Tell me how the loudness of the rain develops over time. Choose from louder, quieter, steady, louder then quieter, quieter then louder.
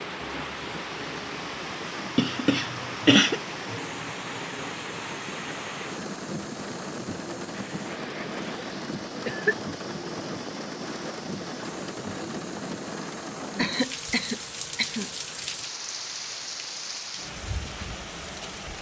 steady.